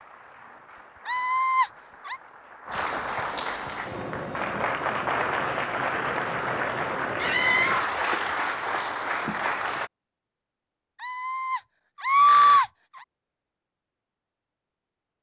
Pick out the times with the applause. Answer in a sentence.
The applause can be heard from 0.0 to 9.9 s.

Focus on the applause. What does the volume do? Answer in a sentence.
The loudness of the applause goes up.